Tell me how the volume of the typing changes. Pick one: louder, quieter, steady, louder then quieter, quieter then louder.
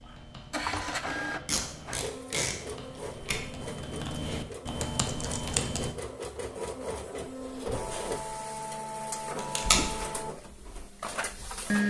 louder.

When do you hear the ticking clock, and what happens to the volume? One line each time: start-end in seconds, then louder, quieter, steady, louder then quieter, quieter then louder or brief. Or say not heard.
not heard.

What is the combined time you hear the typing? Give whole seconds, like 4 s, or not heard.
6 s.